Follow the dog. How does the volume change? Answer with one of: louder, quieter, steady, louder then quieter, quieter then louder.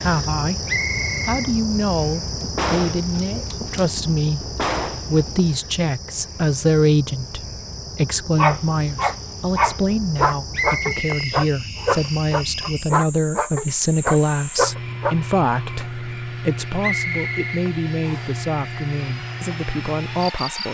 steady.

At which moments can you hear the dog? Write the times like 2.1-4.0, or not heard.
8.3-15.2.